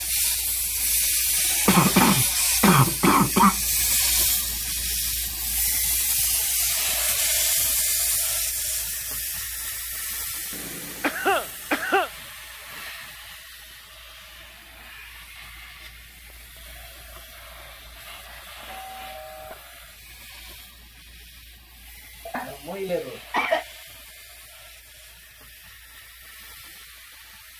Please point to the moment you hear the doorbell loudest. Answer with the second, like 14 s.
19 s.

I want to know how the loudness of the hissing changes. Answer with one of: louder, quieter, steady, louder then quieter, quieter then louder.
quieter.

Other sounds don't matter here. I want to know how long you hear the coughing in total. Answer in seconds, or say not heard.
5 s.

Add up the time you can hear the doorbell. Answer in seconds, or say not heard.
2 s.